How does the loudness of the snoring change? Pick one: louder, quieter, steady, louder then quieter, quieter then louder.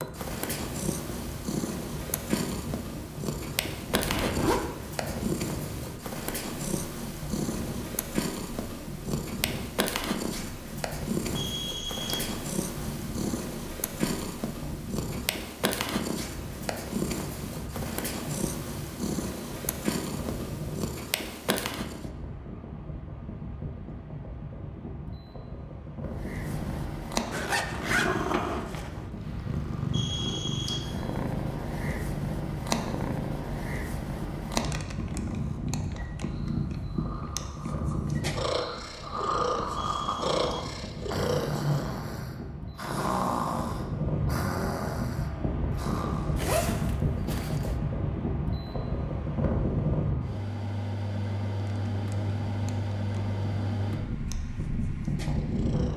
louder.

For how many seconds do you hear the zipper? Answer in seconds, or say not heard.
4 s.